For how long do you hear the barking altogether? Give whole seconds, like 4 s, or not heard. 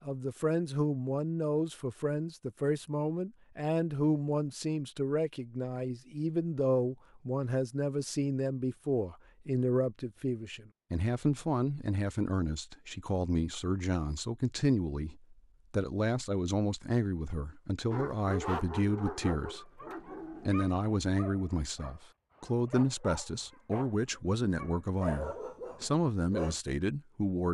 9 s.